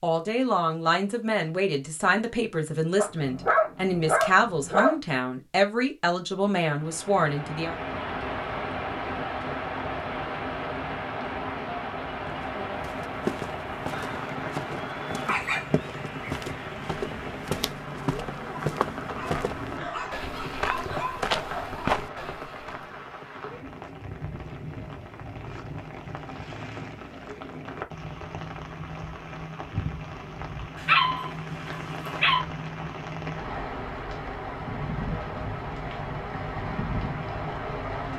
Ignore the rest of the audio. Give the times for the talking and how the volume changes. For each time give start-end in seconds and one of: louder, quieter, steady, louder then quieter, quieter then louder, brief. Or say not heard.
0.0-7.8 steady.